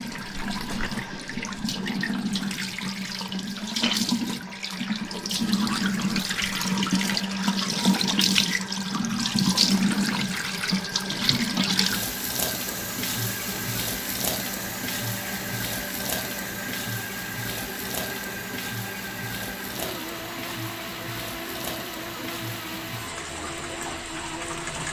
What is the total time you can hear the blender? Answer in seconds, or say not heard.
25 s.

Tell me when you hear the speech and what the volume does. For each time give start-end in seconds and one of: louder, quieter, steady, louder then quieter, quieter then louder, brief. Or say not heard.
not heard.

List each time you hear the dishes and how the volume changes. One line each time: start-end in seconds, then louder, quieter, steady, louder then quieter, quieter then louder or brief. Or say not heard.
not heard.